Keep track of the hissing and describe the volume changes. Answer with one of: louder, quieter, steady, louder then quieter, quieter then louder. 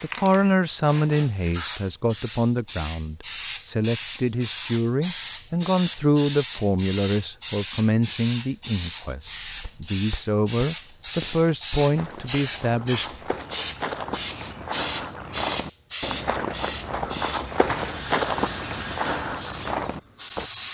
steady.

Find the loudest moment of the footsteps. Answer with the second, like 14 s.
18 s.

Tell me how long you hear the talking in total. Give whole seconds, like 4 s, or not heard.
13 s.